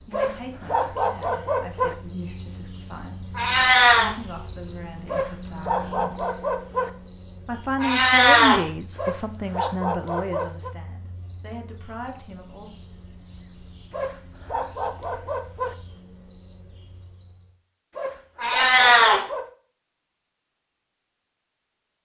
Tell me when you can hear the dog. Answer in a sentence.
You can hear the dog from 0.1 to 1.9 s, from 5.0 to 6.9 s, from 8.9 to 10.8 s, from 13.9 to 15.8 s and from 17.9 to 19.5 s.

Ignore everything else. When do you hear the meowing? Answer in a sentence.
The meowing can be heard from 3.4 to 4.1 s, from 7.8 to 8.6 s and from 18.4 to 19.2 s.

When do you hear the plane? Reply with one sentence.
The plane can't be heard in this clip.